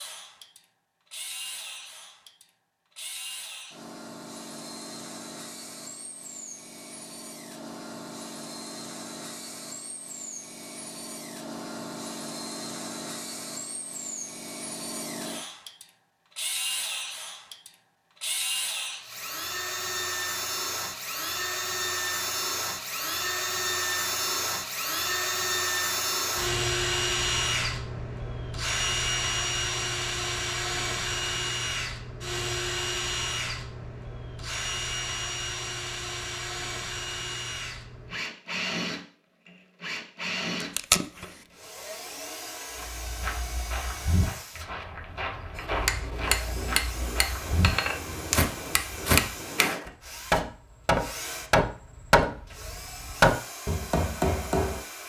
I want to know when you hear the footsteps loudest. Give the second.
49 s.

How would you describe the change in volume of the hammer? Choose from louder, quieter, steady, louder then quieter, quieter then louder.
louder.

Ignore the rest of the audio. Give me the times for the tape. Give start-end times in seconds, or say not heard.
40.6-41.4.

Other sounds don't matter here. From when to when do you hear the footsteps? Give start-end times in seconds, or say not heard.
42.8-49.9.